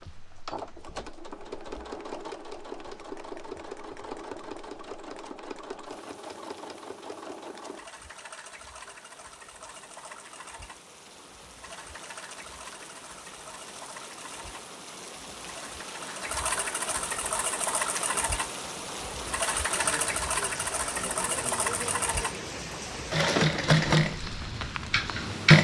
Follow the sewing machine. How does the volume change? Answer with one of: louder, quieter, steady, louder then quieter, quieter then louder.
quieter then louder.